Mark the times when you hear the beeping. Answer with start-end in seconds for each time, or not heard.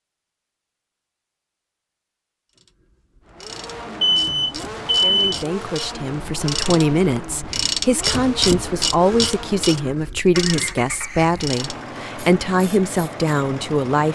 4.0-5.3.